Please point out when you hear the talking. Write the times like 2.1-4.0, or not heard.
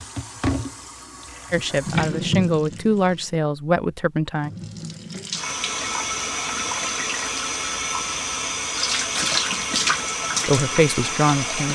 1.5-4.5, 10.4-11.6.